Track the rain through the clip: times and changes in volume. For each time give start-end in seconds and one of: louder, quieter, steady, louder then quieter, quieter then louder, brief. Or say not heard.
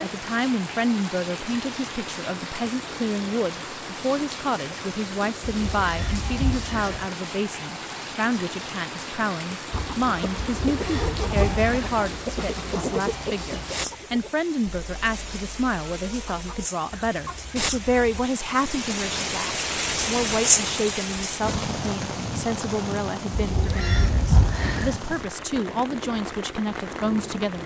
0.0-27.6 louder then quieter.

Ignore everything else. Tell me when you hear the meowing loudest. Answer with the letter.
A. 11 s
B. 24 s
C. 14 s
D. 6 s
B.